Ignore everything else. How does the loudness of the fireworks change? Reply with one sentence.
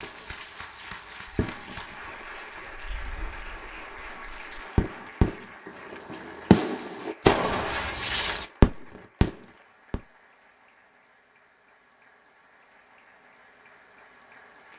The loudness of the fireworks goes down, then up.